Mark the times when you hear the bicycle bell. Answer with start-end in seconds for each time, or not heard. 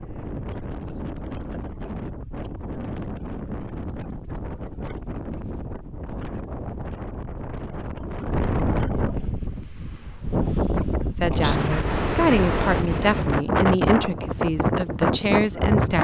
not heard.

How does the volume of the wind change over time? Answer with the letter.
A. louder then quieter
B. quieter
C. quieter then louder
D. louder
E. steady
D.